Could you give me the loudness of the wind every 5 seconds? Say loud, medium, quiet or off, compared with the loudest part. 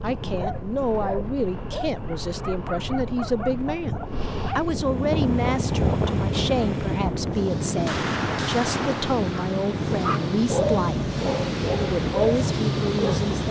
medium, loud, loud.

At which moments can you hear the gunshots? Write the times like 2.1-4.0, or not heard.
7.8-9.2.